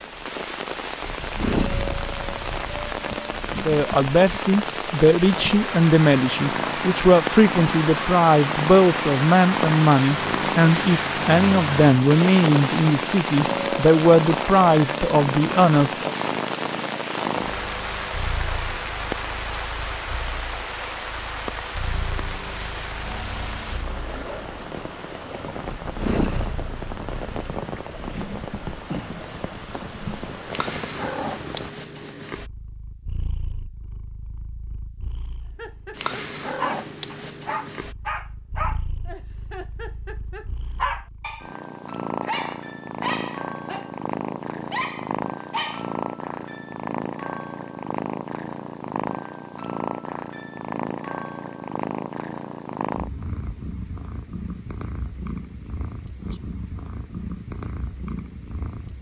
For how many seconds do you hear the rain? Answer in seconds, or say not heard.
32 s.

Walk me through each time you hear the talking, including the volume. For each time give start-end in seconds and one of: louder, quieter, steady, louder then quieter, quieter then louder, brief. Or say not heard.
3.6-16.1 steady.